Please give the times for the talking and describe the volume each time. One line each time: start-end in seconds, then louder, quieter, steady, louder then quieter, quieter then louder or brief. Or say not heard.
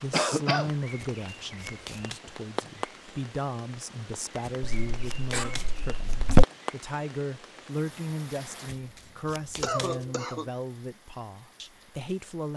0.0-12.5 steady.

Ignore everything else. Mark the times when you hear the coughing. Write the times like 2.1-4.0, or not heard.
0.1-0.7, 4.6-6.5, 9.6-10.5.